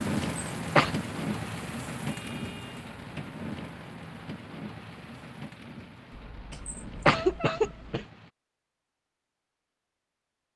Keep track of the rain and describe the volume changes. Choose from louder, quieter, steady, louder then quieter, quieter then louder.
quieter.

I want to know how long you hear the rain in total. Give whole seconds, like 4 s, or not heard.
8 s.